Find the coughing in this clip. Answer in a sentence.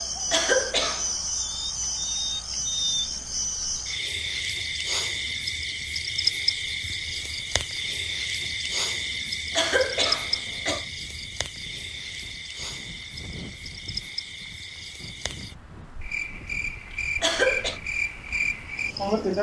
The coughing can be heard from 0.3 to 1.1 s, from 9.6 to 10.8 s and from 17.2 to 17.8 s.